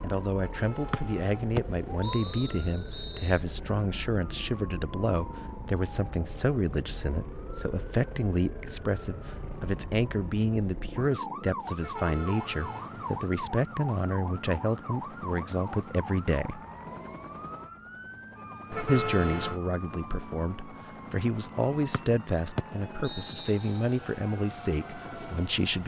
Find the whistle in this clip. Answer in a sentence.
The whistle can be heard from 0.9 to 3.4 s and from 21.9 to 23.8 s.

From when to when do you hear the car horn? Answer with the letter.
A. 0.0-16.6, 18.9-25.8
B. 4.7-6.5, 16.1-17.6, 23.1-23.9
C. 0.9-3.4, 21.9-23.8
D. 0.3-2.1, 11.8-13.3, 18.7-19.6
D.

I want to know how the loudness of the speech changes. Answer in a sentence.
The loudness of the speech stays about the same.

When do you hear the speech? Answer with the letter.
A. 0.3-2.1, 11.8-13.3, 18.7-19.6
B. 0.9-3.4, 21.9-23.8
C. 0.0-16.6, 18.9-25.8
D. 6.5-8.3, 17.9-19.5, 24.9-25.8
C.